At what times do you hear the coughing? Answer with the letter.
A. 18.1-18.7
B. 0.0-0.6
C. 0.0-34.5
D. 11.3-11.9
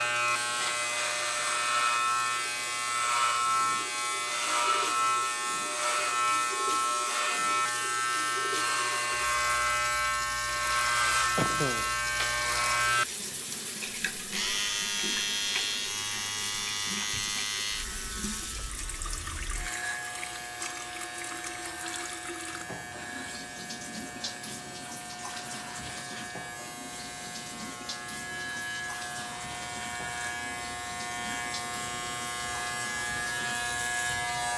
D.